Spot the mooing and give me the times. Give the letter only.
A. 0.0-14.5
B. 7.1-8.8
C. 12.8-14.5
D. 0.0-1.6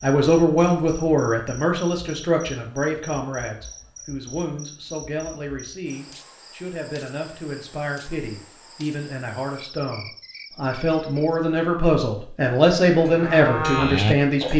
C.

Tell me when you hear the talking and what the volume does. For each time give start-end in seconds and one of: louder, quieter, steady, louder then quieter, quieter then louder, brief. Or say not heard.
0.0-14.5 quieter then louder.